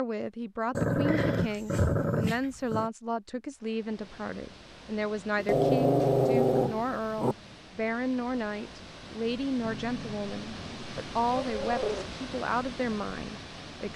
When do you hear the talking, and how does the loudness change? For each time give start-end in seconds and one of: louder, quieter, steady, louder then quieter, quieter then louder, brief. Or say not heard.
0.0-13.9 steady.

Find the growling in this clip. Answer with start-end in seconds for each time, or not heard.
0.8-2.9, 5.3-7.3, 9.6-12.1.